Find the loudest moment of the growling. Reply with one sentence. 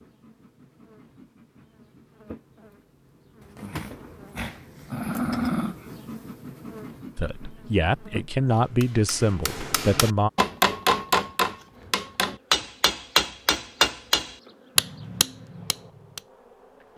The loudest moment of the growling is at 5 seconds.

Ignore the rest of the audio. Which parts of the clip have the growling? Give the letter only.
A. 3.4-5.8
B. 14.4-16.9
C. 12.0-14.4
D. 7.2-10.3
A.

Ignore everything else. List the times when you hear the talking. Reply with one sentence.
You can hear the talking from 7.2 to 10.3 s.